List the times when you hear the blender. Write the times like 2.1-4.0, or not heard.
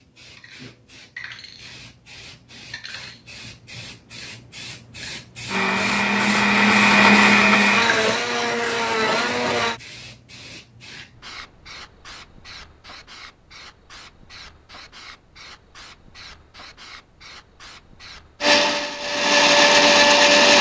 5.5-9.8, 18.4-20.5.